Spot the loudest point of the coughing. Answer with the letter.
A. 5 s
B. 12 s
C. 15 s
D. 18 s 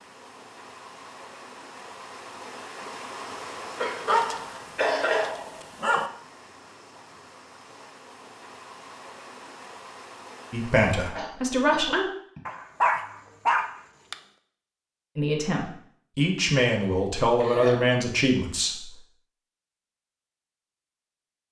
A.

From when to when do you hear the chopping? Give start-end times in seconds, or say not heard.
not heard.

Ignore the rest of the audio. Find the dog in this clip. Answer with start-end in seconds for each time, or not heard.
4.0-6.1, 12.4-14.2.